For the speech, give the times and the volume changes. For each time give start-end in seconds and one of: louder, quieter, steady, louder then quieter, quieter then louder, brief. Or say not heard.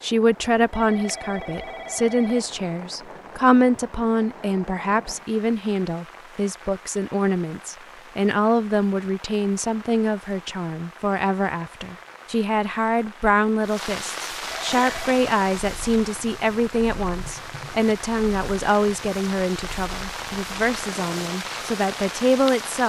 0.0-22.8 steady.